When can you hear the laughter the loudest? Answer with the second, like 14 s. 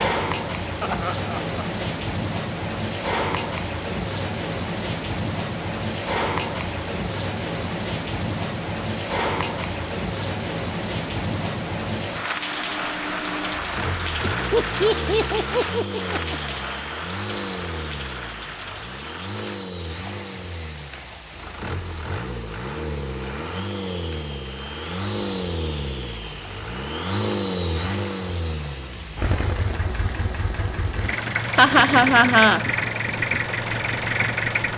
32 s.